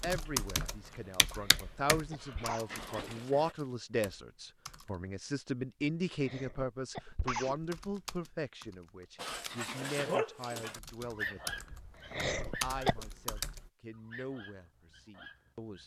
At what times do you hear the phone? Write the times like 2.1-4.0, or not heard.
not heard.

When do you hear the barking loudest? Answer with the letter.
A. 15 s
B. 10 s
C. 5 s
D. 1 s
B.